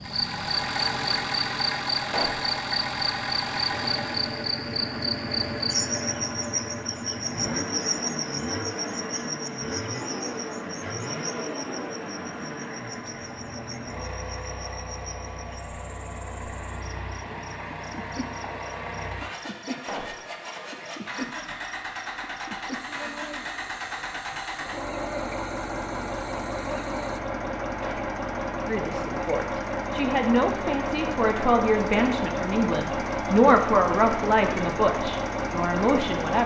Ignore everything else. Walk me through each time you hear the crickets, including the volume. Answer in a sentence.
The crickets can be heard from 0.0 to 27.2 s, getting quieter.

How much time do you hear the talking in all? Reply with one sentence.
The talking can be heard for 8 seconds in total.